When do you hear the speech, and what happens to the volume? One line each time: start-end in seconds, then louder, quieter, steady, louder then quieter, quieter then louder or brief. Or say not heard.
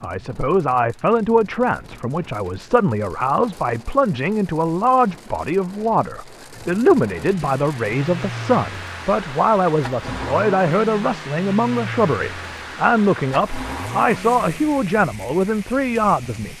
0.0-16.5 steady.